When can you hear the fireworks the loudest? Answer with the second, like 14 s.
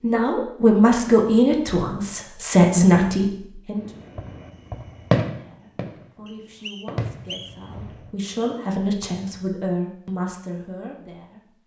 5 s.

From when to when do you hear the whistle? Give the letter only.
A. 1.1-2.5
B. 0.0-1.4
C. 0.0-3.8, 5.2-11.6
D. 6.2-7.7
D.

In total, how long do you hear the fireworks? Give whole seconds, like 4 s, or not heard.
4 s.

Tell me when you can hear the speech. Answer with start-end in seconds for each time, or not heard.
0.0-3.8, 5.2-11.6.